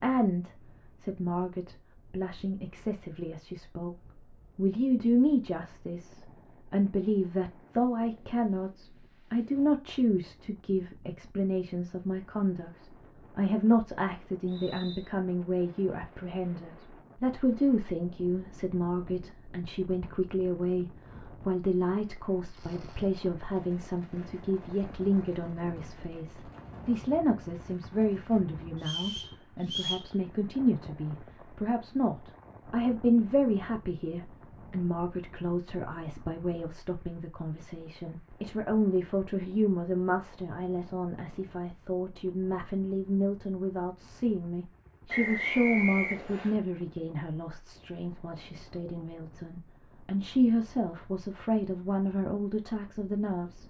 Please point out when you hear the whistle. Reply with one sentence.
You can hear the whistle from 14.4 to 15.1 s, from 28.8 to 30.1 s and from 45.0 to 46.5 s.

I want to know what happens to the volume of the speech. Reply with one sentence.
The loudness of the speech stays about the same.